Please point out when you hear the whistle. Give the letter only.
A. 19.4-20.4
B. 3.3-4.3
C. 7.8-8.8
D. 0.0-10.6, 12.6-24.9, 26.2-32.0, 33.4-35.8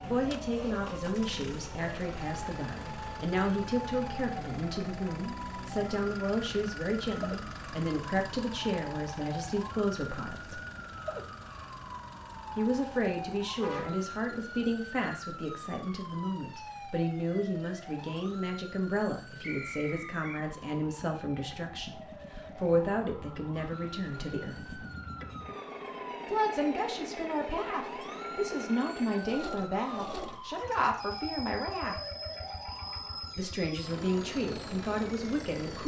A.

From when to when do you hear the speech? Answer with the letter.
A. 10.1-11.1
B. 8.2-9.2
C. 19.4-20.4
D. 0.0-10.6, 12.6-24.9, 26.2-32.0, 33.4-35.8
D.